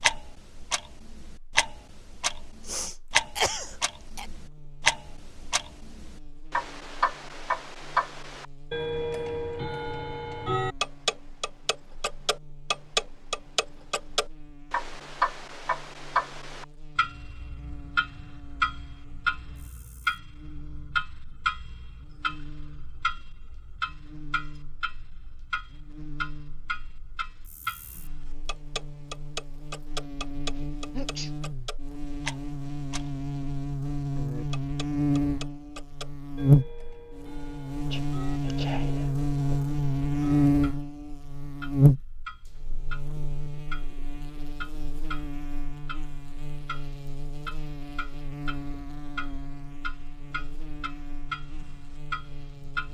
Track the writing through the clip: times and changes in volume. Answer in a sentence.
The writing can't be heard in this clip.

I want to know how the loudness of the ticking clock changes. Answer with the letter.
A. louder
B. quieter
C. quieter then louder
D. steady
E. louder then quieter
B.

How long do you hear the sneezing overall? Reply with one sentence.
You can hear the sneezing for 4 seconds altogether.